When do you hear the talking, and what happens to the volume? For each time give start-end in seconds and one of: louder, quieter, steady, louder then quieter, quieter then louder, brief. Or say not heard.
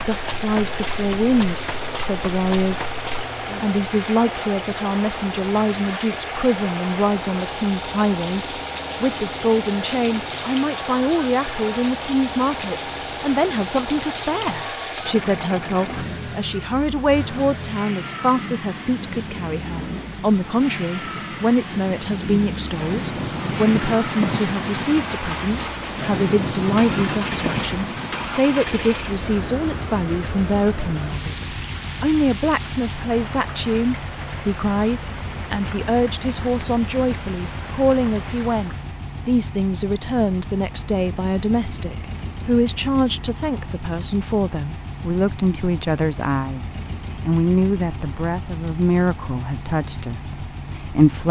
0.0-51.2 steady.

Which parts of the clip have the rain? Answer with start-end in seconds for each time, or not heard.
0.1-39.0.